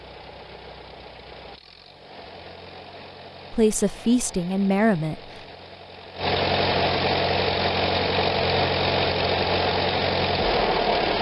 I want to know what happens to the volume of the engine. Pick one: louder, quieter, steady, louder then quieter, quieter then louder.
louder.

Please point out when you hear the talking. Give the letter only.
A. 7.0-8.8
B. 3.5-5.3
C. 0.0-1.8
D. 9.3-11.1
B.